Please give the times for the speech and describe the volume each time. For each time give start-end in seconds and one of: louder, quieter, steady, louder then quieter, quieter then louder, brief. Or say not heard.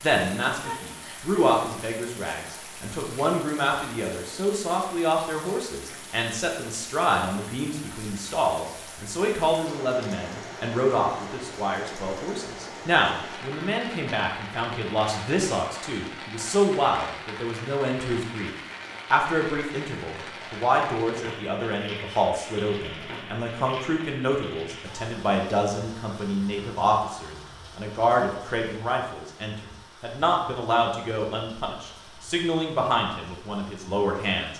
0.0-34.5 steady.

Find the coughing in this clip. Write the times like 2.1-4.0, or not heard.
not heard.